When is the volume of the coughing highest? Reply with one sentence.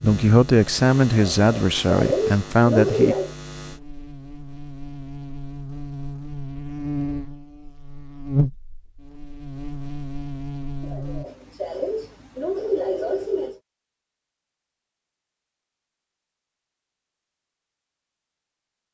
The volume of the coughing peaks at 3 seconds.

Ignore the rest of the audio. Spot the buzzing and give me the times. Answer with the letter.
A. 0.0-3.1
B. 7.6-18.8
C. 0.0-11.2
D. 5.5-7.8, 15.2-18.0
C.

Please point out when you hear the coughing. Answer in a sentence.
The coughing can be heard from 1.1 to 3.4 s and from 10.8 to 13.6 s.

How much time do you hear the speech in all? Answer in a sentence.
You can hear the speech for 3 seconds altogether.